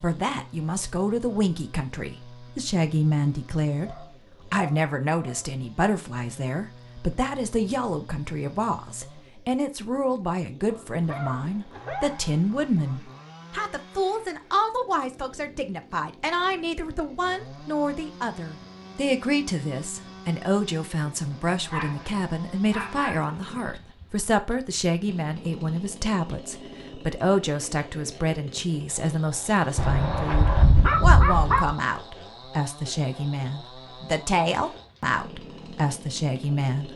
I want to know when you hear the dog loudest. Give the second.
31 s.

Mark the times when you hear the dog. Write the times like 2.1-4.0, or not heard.
3.9-5.5, 10.7-12.3, 21.7-23.3, 29.8-31.8.